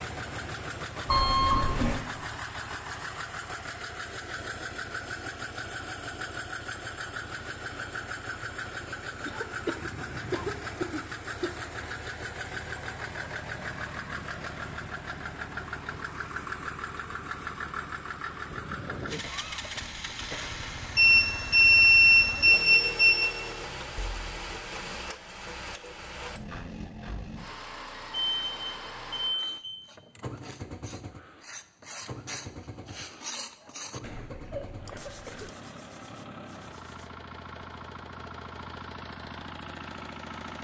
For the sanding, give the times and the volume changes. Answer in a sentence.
You can hear the sanding from 29.2 to 37.1 s, getting louder then quieter.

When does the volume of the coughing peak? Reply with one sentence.
The volume of the coughing peaks at 10 seconds.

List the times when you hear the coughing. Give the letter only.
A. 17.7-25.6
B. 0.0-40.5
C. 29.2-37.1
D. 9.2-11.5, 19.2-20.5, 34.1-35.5
D.